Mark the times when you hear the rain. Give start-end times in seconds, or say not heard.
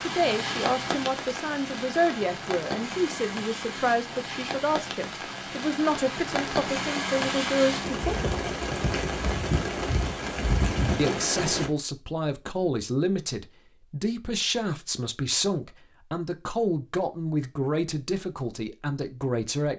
0.0-11.7.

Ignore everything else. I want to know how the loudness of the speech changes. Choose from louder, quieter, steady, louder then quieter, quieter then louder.
steady.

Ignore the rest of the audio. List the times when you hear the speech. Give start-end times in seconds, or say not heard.
0.0-8.3, 10.9-19.7.